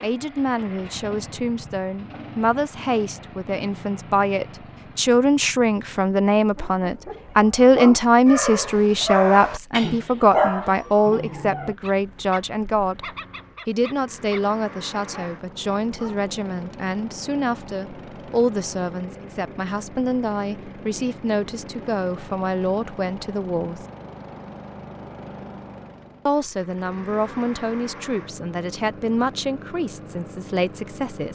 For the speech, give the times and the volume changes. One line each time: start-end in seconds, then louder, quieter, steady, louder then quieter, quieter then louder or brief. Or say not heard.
0.0-23.9 louder then quieter
26.2-31.3 steady.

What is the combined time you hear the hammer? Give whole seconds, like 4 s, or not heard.
not heard.